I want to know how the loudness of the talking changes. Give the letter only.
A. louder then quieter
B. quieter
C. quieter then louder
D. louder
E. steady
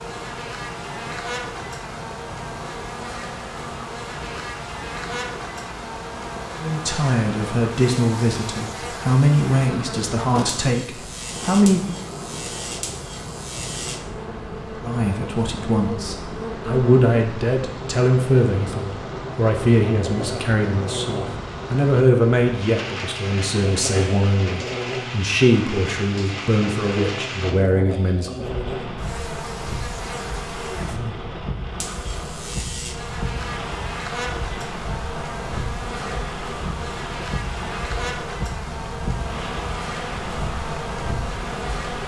E.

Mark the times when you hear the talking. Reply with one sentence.
You can hear the talking from 6.6 to 11.9 s and from 14.8 to 28.4 s.